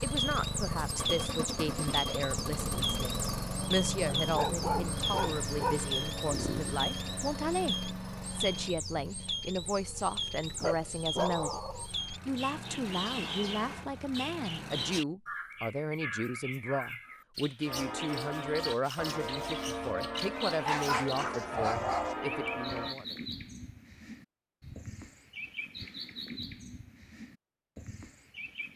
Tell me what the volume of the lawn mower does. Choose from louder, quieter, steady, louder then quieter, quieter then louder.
quieter then louder.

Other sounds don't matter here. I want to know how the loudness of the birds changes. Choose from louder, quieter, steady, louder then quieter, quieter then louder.
quieter.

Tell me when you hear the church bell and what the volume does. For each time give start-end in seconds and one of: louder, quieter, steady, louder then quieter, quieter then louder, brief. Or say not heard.
17.6-22.9 steady.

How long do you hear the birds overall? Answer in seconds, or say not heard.
29 s.